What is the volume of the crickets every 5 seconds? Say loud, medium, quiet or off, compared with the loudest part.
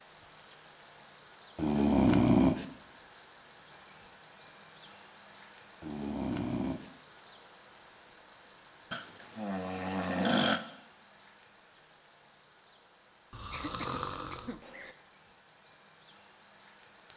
loud, loud, medium, medium.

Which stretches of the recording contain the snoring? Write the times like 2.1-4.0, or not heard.
1.6-2.6, 5.8-6.9, 8.9-10.6, 13.3-14.9.